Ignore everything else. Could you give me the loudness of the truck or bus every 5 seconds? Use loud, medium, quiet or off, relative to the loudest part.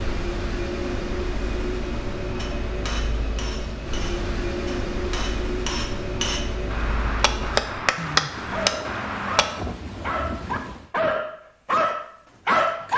loud, loud, off.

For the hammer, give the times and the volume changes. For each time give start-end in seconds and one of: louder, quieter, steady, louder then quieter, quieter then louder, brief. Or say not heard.
2.4-9.6 louder.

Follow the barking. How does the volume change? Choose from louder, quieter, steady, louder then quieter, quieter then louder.
louder.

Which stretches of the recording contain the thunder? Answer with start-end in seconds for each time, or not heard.
8.0-10.9.